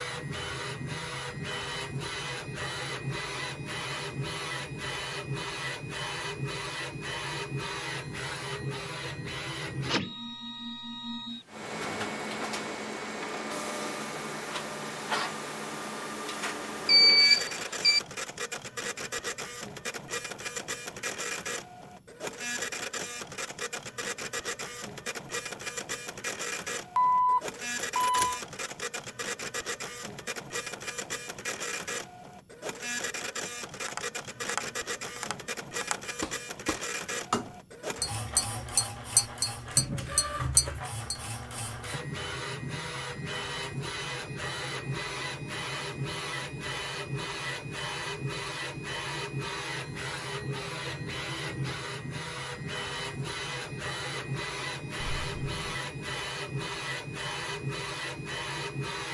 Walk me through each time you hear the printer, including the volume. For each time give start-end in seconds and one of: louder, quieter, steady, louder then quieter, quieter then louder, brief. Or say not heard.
0.0-59.0 steady.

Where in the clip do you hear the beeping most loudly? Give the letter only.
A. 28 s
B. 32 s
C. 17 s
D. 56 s
C.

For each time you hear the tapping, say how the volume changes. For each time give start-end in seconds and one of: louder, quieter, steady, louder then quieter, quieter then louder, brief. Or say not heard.
33.8-41.1 louder.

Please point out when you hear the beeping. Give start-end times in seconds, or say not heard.
16.9-18.0, 26.9-28.4, 55.0-55.9.